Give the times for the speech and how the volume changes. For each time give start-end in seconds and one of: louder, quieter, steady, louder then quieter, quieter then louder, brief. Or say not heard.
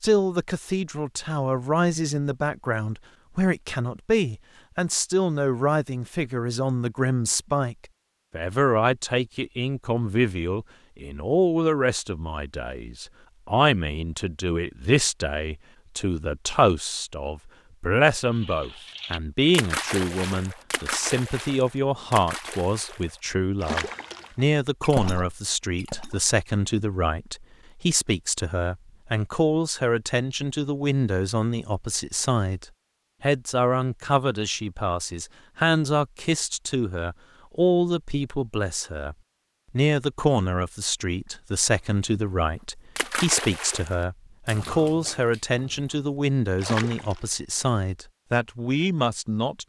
0.0-49.6 steady.